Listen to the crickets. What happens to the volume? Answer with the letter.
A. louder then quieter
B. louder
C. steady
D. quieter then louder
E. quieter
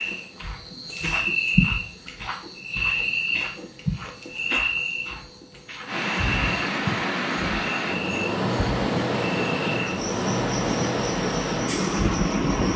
E.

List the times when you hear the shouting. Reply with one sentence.
The shouting can't be heard in this clip.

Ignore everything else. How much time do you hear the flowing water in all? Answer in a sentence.
You can hear the flowing water for 7 seconds altogether.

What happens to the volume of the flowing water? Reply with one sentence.
The loudness of the flowing water stays about the same.